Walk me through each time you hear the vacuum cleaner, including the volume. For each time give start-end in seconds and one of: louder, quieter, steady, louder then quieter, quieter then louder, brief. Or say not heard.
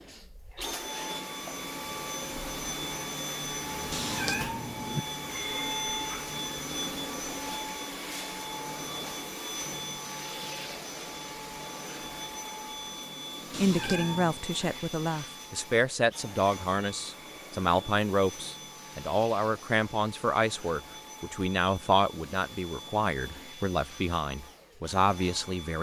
0.0-25.7 quieter.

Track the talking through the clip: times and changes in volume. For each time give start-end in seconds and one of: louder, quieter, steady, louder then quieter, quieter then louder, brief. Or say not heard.
13.6-25.7 steady.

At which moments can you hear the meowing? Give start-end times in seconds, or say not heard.
3.9-5.0, 13.5-14.3.